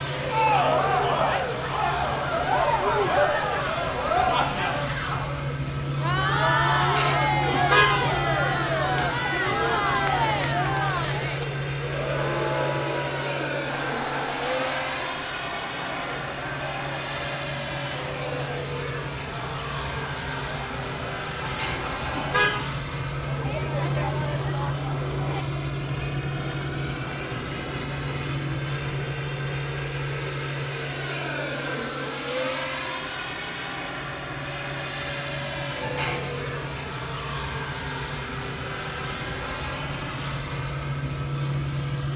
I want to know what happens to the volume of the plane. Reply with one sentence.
The volume of the plane stays about the same.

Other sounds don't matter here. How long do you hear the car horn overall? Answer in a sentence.
The car horn can be heard for 3 seconds in total.